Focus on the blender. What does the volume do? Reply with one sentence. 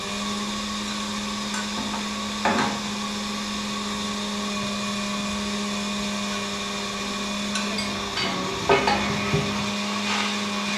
The loudness of the blender stays about the same.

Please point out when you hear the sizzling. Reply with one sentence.
You can hear the sizzling from 0.0 to 10.7 s.